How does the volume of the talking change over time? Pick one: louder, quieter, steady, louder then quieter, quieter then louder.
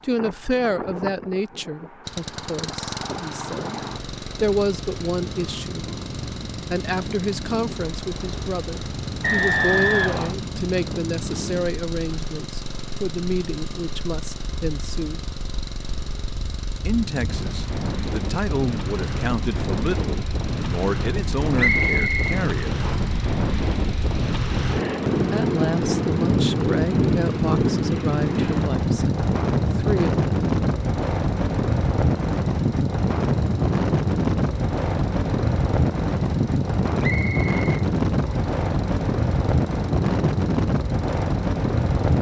steady.